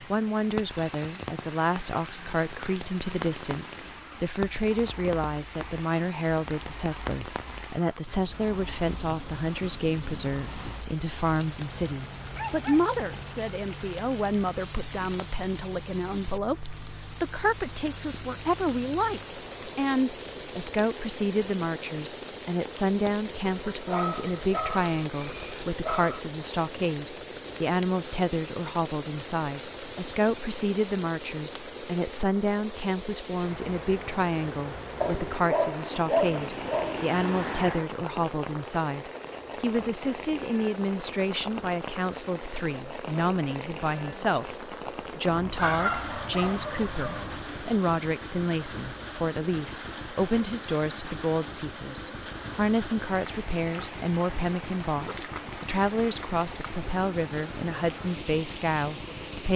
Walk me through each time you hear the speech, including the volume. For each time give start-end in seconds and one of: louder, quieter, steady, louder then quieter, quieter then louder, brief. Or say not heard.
0.0-59.5 steady.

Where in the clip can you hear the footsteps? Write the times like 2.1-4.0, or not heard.
not heard.